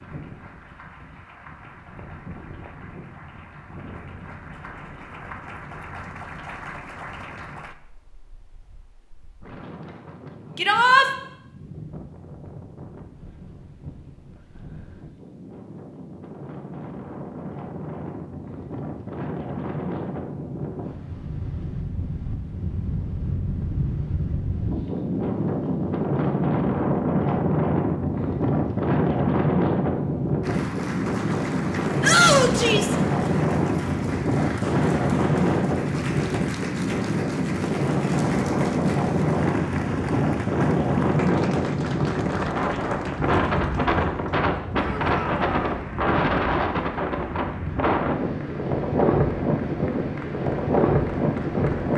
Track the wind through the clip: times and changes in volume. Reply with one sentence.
The wind can be heard from 0.0 to 51.9 s, getting louder.